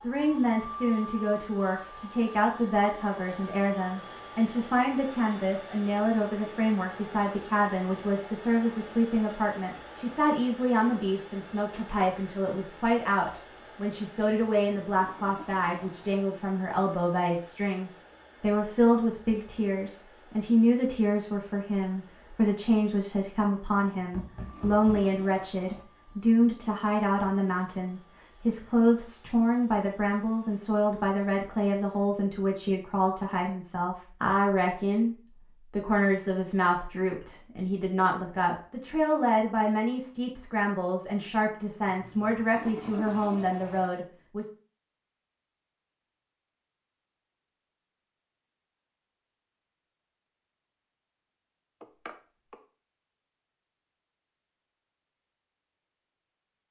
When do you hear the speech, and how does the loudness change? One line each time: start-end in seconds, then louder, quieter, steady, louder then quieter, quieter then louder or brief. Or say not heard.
0.0-44.5 steady.